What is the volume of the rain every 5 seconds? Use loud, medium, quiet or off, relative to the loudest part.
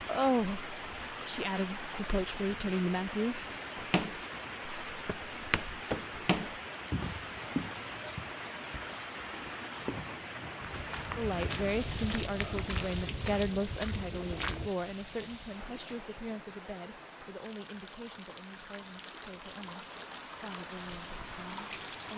loud, loud, loud, medium, loud.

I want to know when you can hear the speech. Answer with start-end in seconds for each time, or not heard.
0.1-3.5, 11.2-22.1.